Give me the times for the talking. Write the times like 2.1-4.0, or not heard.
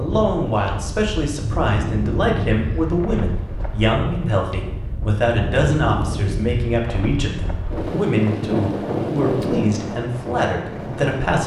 0.0-11.4.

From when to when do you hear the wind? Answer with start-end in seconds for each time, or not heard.
0.0-11.4.